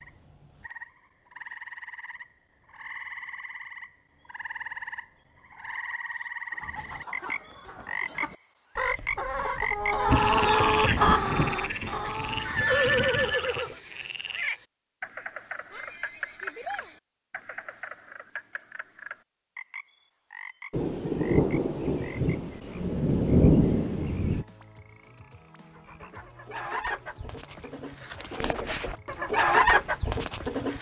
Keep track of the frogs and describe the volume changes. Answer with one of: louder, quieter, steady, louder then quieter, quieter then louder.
louder then quieter.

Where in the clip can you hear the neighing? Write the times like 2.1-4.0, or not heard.
12.4-13.8, 15.7-17.0.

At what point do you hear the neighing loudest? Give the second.
13 s.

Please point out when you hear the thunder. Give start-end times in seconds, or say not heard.
9.9-13.3, 20.7-24.4.